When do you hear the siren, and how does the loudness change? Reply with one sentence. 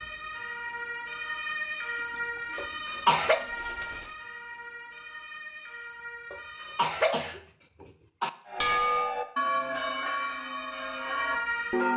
You can hear the siren from 0.0 to 7.0 s, getting quieter; and briefly from 10.1 to 11.9 s.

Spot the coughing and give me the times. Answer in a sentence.
The coughing can be heard from 2.5 to 3.5 s and from 6.3 to 8.3 s.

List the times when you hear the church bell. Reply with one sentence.
The church bell can be heard from 8.4 to 11.9 s.